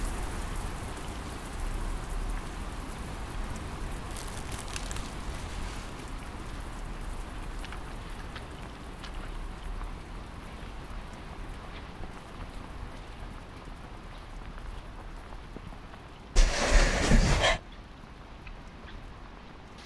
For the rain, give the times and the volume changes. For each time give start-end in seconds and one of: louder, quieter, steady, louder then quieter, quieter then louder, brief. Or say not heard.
0.0-19.8 quieter.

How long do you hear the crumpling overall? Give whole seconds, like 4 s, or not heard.
2 s.